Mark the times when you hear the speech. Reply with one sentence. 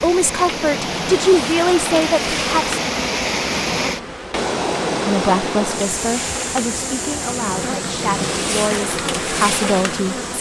The speech can be heard from 0.0 to 2.8 s and from 5.0 to 10.3 s.